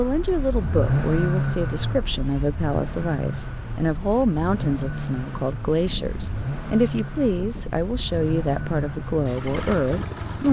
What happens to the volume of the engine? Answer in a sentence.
The loudness of the engine goes down.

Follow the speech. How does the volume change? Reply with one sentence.
The loudness of the speech stays about the same.